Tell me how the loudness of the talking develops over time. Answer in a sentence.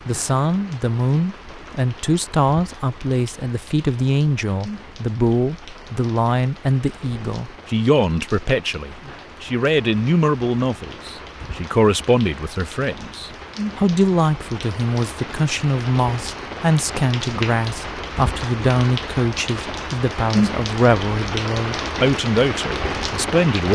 The volume of the talking stays about the same.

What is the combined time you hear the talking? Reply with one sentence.
You can hear the talking for 24 seconds altogether.